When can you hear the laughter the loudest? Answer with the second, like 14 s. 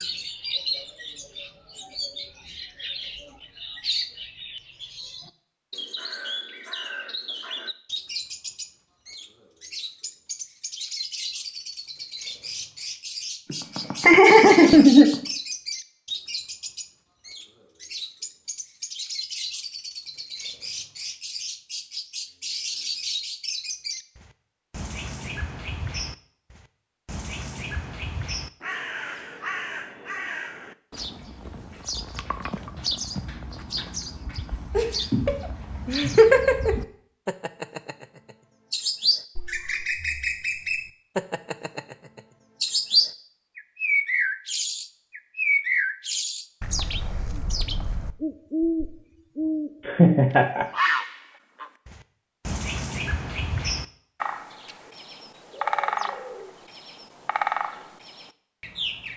15 s.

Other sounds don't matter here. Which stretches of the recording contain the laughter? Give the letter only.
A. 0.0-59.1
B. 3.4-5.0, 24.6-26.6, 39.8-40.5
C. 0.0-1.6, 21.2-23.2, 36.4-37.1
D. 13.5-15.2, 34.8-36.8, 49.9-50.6
D.